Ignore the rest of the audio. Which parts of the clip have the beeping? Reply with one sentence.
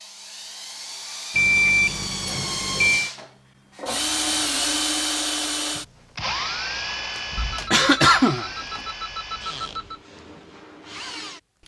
The beeping can be heard from 1.4 to 3.1 s and from 7.3 to 10.0 s.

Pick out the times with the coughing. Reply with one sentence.
You can hear the coughing from 7.2 to 8.8 s.